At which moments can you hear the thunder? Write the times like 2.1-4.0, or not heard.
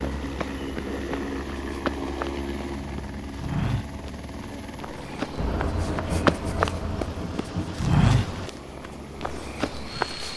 5.2-8.5.